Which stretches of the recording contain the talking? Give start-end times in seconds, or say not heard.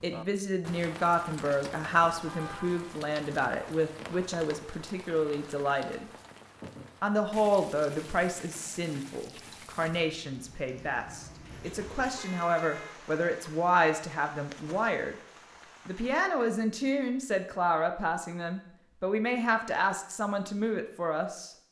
0.0-6.0, 7.0-15.2, 15.8-21.5.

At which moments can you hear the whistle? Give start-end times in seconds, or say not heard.
not heard.